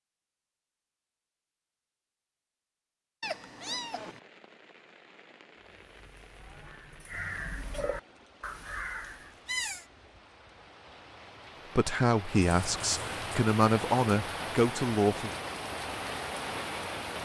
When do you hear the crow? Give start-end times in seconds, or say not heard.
5.6-9.3.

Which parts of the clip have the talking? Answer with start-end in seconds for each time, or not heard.
11.8-15.3.